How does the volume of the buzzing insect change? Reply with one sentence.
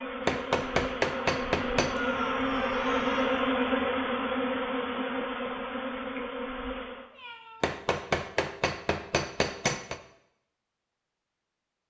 The loudness of the buzzing insect goes up, then down.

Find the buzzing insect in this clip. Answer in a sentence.
The buzzing insect can be heard from 0.0 to 7.1 s.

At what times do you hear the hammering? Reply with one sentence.
The hammering can be heard from 0.2 to 1.9 s and from 7.6 to 10.0 s.